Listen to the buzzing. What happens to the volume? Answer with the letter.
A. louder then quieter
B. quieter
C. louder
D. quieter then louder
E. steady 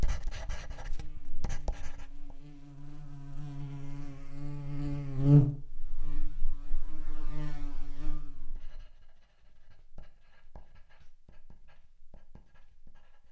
A.